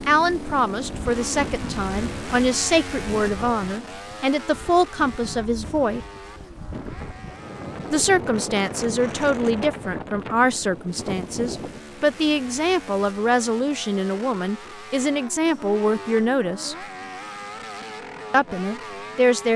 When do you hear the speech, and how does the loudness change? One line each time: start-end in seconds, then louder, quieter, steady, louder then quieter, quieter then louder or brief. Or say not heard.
0.1-6.0 steady
7.9-16.8 steady
18.3-19.5 brief.